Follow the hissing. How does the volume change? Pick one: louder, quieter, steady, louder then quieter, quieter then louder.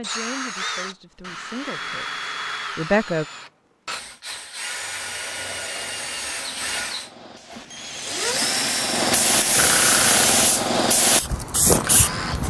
louder.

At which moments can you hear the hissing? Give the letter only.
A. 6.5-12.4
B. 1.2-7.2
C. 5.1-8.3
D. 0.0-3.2
A.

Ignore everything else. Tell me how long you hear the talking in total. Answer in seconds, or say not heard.
3 s.